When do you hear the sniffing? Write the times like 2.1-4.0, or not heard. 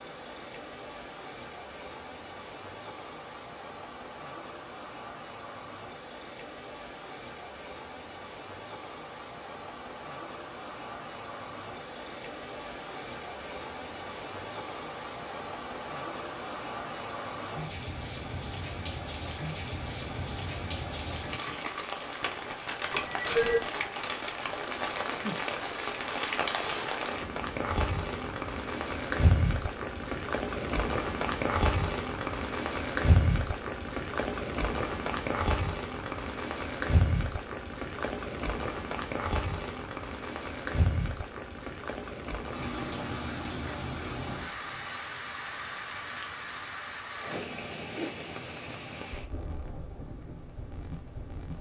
22.9-23.7, 47.1-48.2.